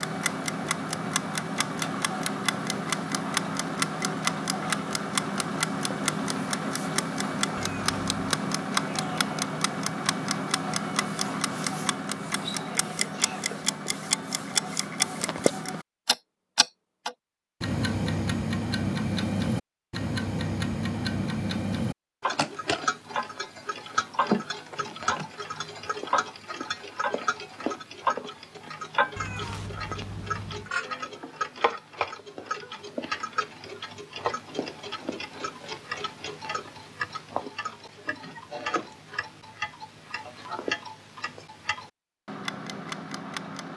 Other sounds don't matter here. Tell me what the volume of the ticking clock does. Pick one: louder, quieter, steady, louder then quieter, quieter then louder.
quieter.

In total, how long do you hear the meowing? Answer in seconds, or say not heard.
2 s.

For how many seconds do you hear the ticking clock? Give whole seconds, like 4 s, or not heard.
44 s.